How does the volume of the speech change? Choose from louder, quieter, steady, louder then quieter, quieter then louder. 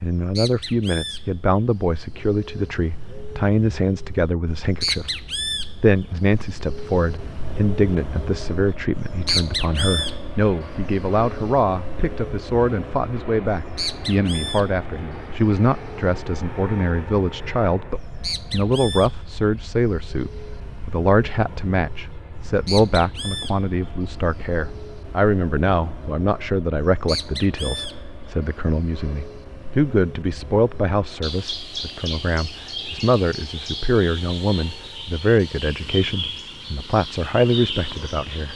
steady.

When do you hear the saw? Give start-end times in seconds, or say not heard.
not heard.